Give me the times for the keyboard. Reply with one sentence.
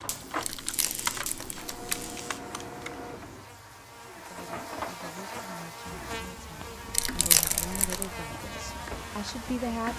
You can hear the keyboard from 0.0 to 3.5 s.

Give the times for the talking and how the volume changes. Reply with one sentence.
The talking can be heard from 4.2 to 9.9 s, getting louder.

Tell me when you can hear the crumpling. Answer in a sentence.
You can hear the crumpling from 0.4 to 1.9 s and from 6.9 to 8.1 s.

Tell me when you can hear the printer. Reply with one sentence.
You can hear the printer from 0.0 to 9.9 s.